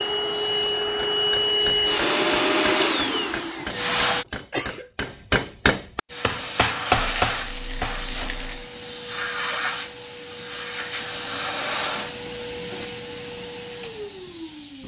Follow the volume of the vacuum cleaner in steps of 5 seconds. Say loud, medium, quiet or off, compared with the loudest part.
loud, medium, medium.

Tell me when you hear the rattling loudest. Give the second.
7 s.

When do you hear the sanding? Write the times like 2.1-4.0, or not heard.
not heard.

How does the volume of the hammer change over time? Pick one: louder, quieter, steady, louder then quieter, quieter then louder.
louder.